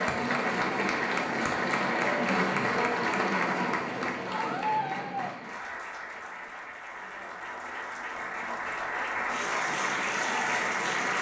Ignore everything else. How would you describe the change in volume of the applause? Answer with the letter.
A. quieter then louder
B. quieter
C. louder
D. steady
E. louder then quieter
A.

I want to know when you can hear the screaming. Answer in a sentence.
You can hear the screaming from 4.2 to 5.3 s.